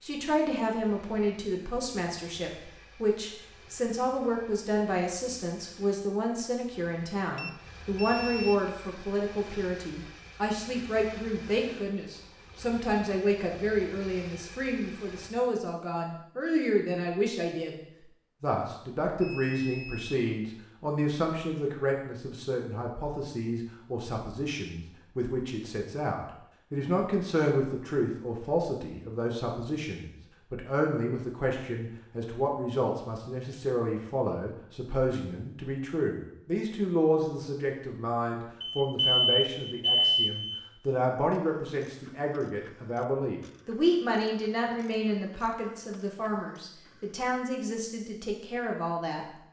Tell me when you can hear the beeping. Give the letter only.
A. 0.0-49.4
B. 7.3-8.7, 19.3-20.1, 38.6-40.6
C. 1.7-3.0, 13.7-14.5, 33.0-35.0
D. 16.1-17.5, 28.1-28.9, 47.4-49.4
B.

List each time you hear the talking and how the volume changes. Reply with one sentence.
You can hear the talking from 0.0 to 49.4 s, at a steady volume.